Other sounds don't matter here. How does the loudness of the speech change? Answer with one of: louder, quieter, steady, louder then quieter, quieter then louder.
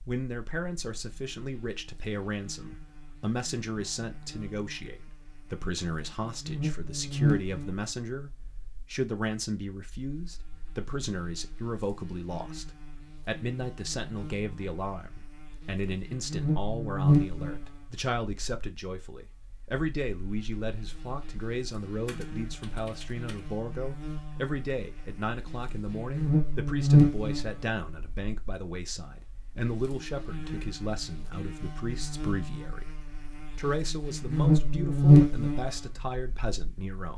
steady.